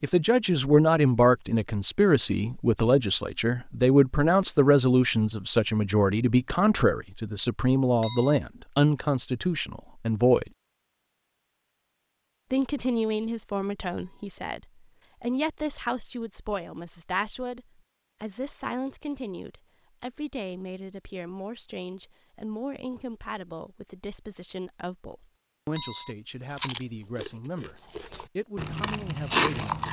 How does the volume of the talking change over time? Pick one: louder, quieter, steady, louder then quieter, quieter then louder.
quieter.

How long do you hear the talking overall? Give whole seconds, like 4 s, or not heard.
28 s.